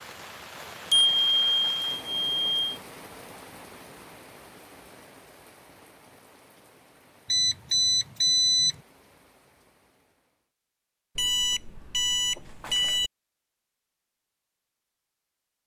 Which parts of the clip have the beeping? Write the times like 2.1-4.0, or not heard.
0.9-2.8, 7.2-8.8, 11.2-13.1.